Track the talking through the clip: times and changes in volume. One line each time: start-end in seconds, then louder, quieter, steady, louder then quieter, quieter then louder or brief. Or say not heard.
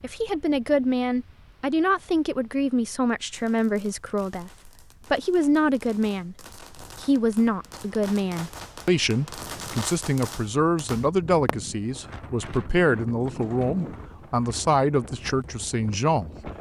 0.0-16.5 steady.